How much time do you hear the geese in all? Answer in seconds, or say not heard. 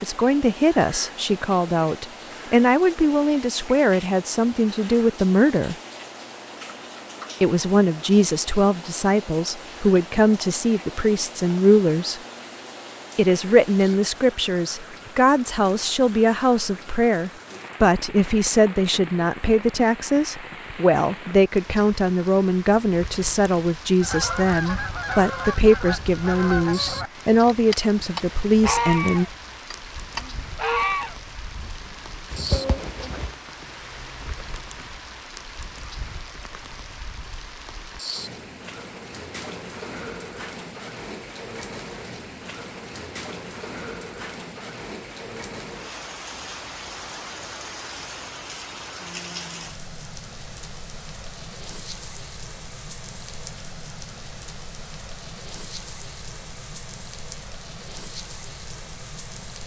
9 s.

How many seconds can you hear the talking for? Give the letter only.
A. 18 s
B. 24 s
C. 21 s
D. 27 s
D.